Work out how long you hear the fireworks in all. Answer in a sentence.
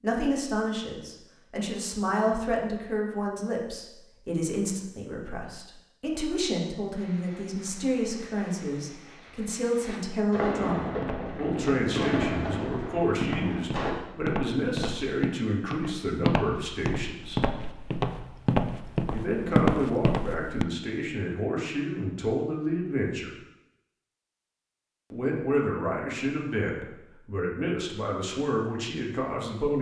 You can hear the fireworks for 7 seconds altogether.